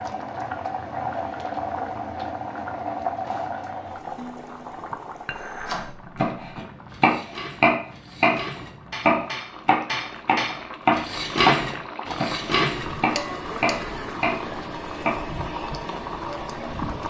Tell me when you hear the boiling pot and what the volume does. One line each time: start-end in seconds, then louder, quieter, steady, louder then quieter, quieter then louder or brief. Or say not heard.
0.0-17.0 quieter then louder.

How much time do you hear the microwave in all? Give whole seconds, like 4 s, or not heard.
not heard.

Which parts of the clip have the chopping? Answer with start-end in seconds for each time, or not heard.
5.7-15.2.